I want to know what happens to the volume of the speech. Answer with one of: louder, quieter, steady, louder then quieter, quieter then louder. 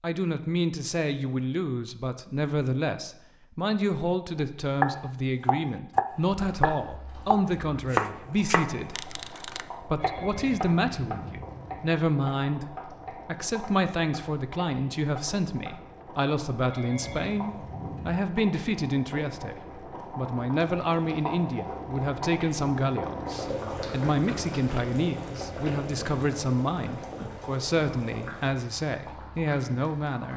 steady.